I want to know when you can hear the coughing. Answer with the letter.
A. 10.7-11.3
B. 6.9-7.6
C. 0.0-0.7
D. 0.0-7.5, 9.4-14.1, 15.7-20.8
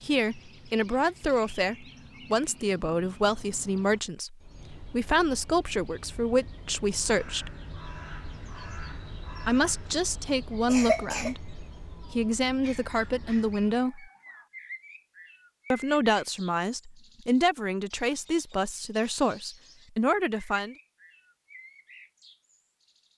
A.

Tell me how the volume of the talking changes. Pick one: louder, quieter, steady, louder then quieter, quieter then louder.
steady.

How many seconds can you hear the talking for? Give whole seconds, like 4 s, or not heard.
17 s.